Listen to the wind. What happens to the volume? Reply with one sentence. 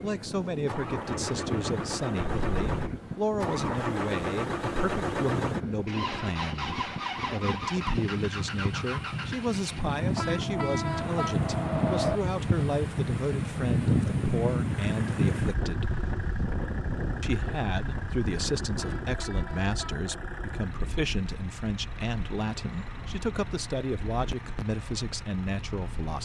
The volume of the wind goes up, then down.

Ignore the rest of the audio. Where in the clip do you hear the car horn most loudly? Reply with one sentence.
The loudest moment of the car horn is at 12 seconds.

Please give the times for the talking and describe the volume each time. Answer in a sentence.
You can hear the talking from 0.0 to 15.9 s, at a steady volume; and from 17.2 to 26.1 s, at a steady volume.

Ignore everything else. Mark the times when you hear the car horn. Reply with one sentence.
The car horn can be heard from 2.2 to 3.0 s, from 10.2 to 12.2 s and from 18.8 to 20.2 s.